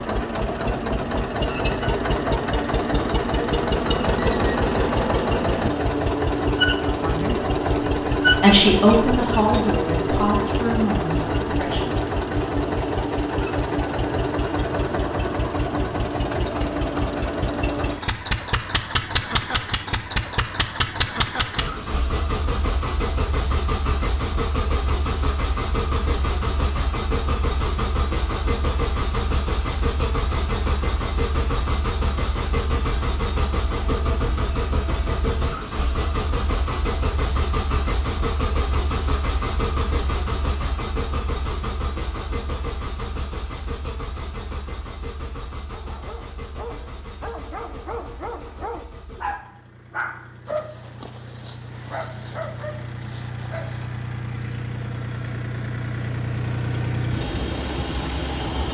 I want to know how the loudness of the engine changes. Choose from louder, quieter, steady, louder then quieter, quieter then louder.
quieter.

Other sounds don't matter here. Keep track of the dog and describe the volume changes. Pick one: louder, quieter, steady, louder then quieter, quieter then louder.
louder then quieter.